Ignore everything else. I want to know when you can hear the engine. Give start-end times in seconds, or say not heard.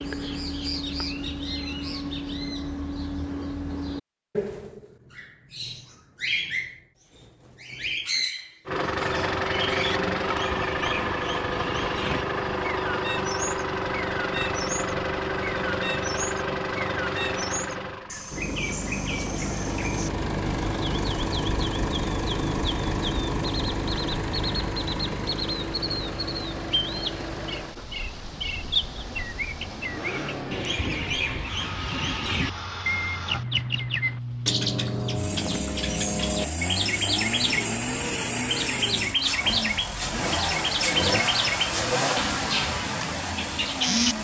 8.7-44.1.